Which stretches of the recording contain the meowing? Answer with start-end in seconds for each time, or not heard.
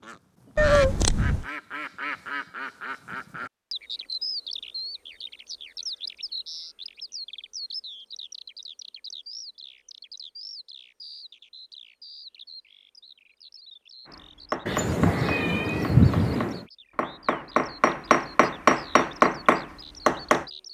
0.6-1.4, 14.7-16.6.